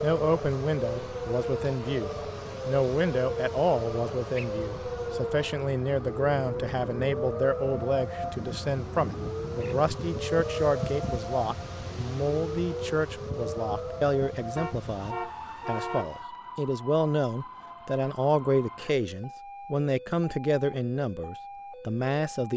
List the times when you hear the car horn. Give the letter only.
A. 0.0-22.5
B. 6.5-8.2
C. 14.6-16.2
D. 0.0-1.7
C.